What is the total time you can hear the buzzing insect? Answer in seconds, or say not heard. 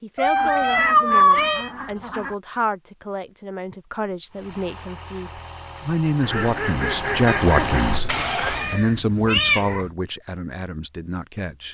not heard.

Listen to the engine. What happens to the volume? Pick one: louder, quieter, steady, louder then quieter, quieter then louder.
louder.